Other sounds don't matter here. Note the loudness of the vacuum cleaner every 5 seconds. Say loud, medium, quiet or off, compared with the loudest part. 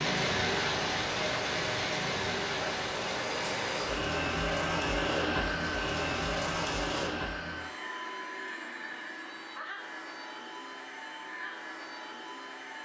loud, loud, medium.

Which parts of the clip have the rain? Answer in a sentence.
You can hear the rain from 0.0 to 7.2 s.